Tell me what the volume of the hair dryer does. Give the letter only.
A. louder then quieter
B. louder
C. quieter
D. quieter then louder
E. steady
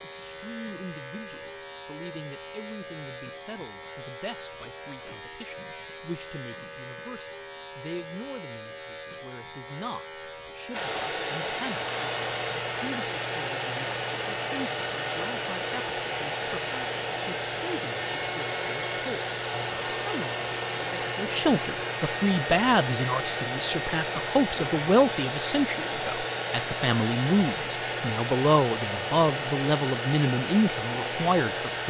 E.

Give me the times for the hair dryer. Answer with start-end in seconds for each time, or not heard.
10.7-31.8.